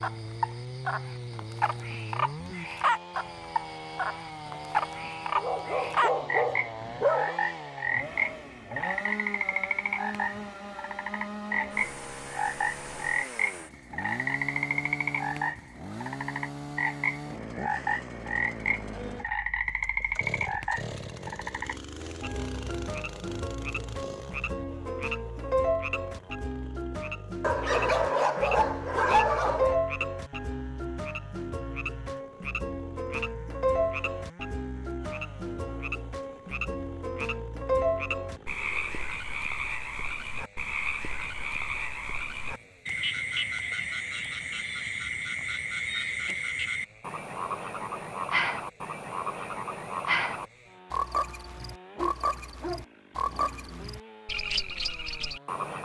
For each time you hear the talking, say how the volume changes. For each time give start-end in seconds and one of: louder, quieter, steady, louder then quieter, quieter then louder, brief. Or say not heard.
not heard.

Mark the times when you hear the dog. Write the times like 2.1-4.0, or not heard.
5.3-7.4, 27.4-29.8, 52.0-54.0.